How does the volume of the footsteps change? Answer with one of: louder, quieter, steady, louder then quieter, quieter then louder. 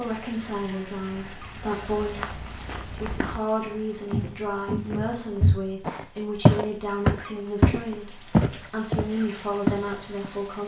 louder.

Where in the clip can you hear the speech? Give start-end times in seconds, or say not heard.
0.0-10.6.